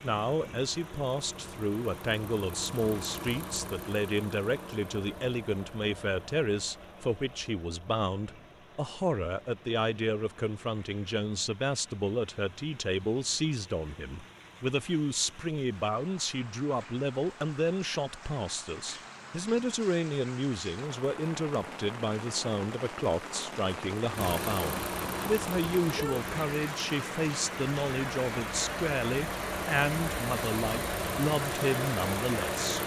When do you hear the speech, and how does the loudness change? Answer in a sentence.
You can hear the speech from 0.0 to 32.8 s, at a steady volume.